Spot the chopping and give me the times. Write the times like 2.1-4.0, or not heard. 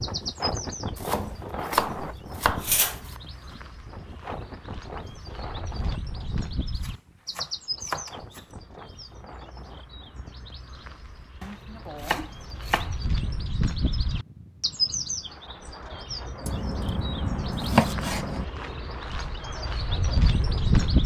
0.9-3.2, 6.8-8.4, 11.4-13.1, 16.4-18.4.